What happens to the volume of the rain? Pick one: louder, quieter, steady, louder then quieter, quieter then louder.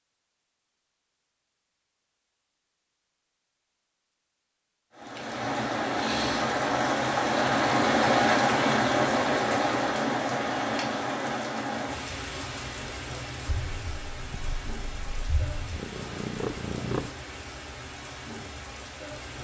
quieter.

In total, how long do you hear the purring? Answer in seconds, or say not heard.
4 s.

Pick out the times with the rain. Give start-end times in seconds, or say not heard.
4.9-19.3.